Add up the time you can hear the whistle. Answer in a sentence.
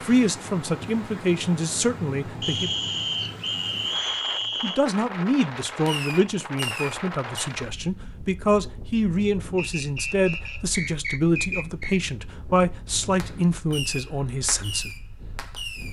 You can hear the whistle for 5 seconds altogether.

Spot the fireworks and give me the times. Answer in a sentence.
You can hear the fireworks from 5.8 to 7.5 s and from 13.2 to 15.8 s.